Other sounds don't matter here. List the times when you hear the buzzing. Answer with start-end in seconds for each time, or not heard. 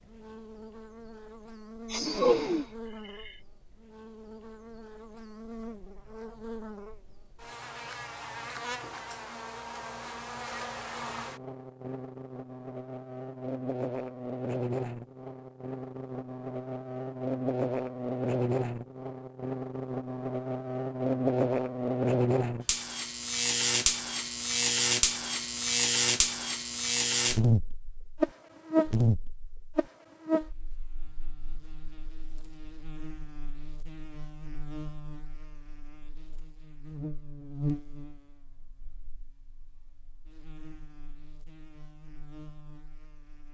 0.0-43.4.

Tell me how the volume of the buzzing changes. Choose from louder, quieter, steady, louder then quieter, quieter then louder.
louder then quieter.